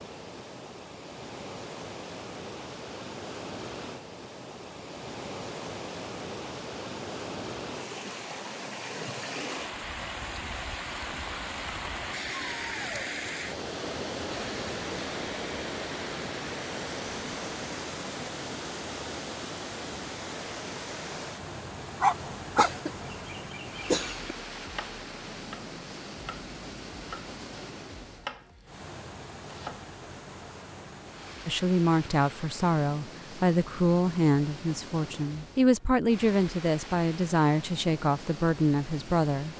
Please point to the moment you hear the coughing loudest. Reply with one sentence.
The volume of the coughing peaks at 24 seconds.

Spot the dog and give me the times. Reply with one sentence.
The dog can be heard from 22.0 to 23.1 s.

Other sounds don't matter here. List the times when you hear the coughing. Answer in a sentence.
The coughing can be heard from 22.6 to 24.4 s.